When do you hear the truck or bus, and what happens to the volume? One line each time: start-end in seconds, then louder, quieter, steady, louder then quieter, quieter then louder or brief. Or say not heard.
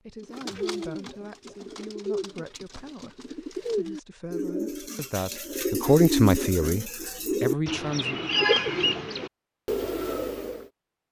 not heard.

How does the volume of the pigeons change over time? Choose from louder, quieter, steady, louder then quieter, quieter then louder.
louder.